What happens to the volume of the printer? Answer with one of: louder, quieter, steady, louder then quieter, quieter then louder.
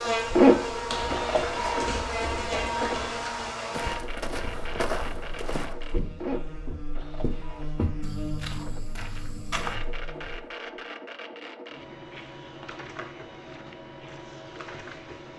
quieter.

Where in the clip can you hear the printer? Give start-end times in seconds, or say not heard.
0.1-15.3.